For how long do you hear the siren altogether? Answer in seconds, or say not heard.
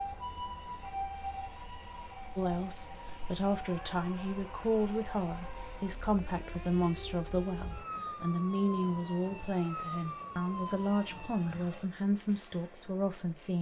12 s.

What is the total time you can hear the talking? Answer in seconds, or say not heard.
11 s.